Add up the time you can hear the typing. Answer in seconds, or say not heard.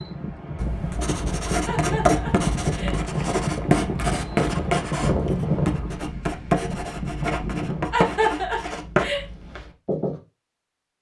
not heard.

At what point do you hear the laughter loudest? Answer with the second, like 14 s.
8 s.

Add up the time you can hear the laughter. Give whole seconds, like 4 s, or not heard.
3 s.